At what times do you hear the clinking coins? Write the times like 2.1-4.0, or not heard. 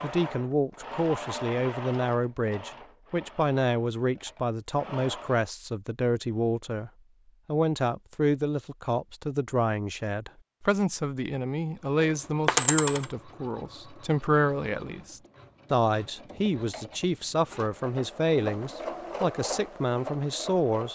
11.9-13.1.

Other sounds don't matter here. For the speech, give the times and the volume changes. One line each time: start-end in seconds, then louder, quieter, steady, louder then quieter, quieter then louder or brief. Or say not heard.
0.0-20.8 steady.